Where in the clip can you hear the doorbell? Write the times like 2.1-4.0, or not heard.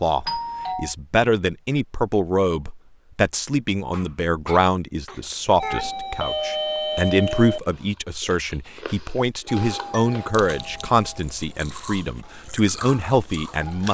0.2-0.9, 5.5-7.6, 9.4-11.2.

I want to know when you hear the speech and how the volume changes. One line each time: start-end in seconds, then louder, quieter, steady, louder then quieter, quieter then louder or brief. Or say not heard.
0.0-13.8 steady.